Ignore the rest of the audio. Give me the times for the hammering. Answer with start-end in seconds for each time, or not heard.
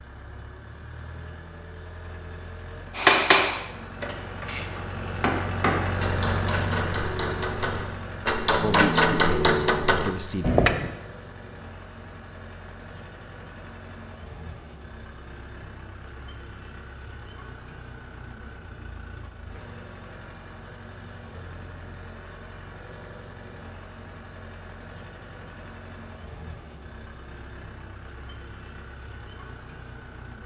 3.0-10.9.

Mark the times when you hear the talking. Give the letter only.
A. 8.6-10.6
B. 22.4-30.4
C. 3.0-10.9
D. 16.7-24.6
A.